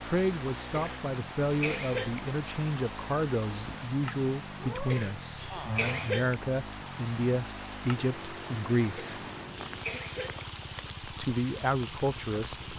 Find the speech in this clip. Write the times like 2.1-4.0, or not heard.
0.0-9.2, 11.0-12.7.